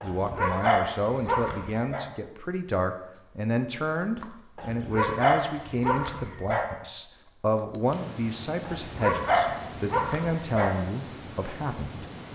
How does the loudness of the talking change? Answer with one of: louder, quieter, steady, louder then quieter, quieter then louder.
steady.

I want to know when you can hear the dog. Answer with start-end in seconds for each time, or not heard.
0.0-2.0, 4.5-6.7, 8.7-10.8.